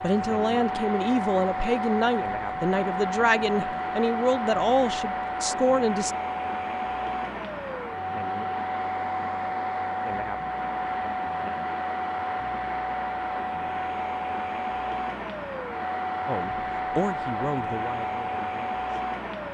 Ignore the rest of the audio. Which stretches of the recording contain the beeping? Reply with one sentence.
The beeping can't be heard in this clip.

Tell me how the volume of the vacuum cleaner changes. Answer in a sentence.
The loudness of the vacuum cleaner stays about the same.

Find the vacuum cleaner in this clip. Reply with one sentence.
The vacuum cleaner can be heard from 0.0 to 19.5 s.